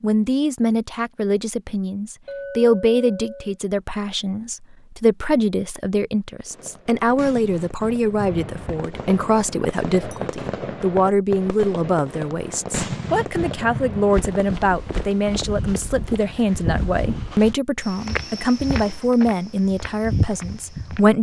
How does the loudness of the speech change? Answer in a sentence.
The loudness of the speech stays about the same.